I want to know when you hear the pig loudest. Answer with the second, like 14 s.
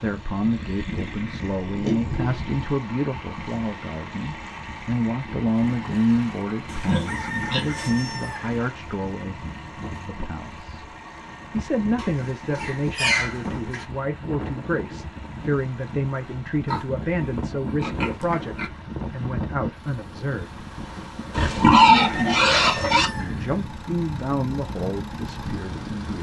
22 s.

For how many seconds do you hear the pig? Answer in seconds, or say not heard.
9 s.